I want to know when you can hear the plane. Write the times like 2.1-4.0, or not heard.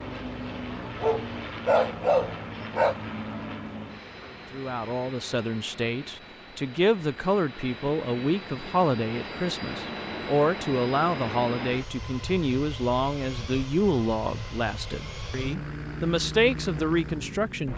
0.0-17.7.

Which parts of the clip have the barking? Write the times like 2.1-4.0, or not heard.
1.0-3.0.